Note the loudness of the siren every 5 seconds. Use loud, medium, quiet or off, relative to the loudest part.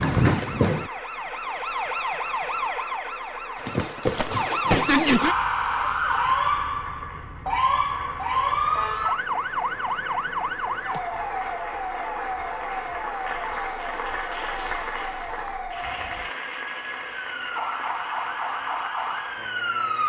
loud, loud, medium, medium.